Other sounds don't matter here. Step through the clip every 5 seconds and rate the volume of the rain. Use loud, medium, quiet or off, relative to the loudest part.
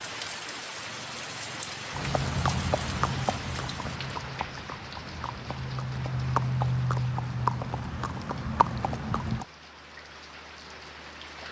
loud, medium, medium.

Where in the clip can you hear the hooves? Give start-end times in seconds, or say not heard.
1.9-9.4.